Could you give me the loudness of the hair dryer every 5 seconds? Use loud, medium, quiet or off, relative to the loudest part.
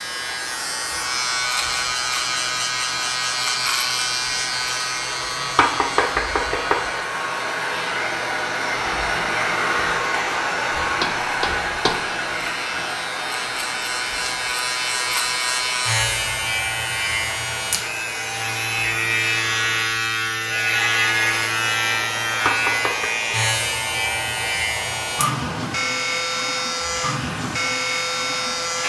medium, loud, loud, medium, medium, medium.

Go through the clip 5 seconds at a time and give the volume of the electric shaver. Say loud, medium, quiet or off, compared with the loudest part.
loud, medium, medium, loud, loud, loud.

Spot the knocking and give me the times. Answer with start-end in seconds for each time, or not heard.
5.5-6.8, 11.0-12.6, 22.4-23.1.